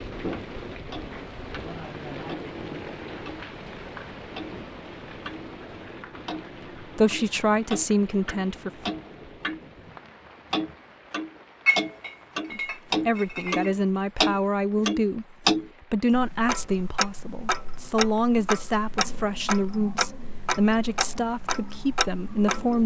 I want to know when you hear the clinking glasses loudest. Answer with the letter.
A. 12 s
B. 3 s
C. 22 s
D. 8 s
A.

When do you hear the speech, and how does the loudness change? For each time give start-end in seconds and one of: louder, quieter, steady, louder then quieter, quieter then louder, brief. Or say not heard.
7.0-8.9 brief
12.5-22.8 steady.